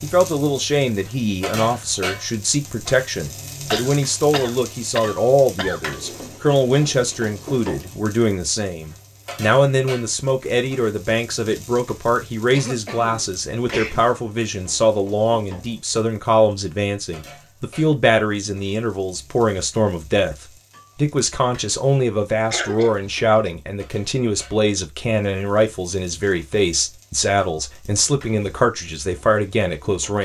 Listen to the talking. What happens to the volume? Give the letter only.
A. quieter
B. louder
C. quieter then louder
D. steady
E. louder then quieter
D.